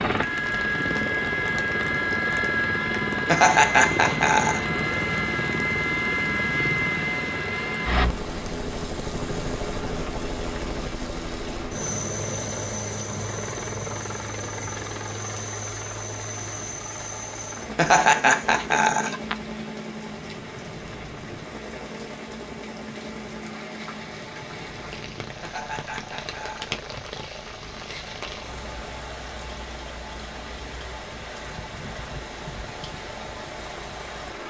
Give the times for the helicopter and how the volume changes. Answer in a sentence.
The helicopter can be heard from 0.0 to 34.4 s, getting quieter.